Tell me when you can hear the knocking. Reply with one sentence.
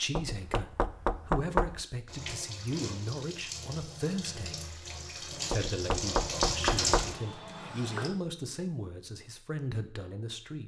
You can hear the knocking from 0.1 to 1.8 s and from 5.5 to 7.2 s.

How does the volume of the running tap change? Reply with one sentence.
The loudness of the running tap goes up.